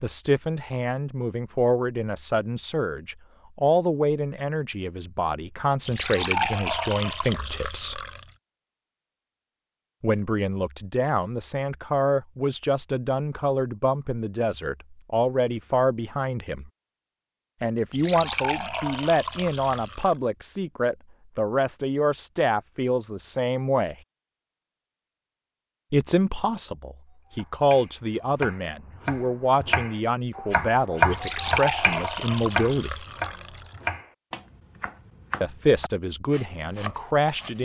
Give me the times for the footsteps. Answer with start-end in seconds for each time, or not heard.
not heard.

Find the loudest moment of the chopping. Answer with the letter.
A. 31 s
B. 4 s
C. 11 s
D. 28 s
A.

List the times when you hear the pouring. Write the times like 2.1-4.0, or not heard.
5.8-8.3, 17.9-20.2, 31.1-33.8.